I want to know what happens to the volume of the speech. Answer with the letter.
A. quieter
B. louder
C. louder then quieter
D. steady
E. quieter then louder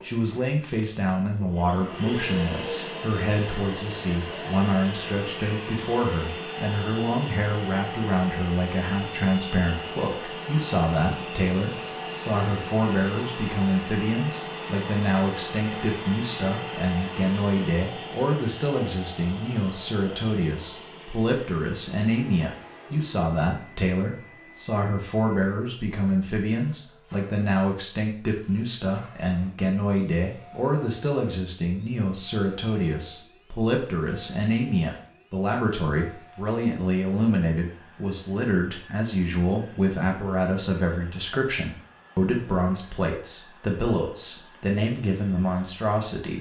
D.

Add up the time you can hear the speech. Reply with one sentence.
You can hear the speech for 46 seconds altogether.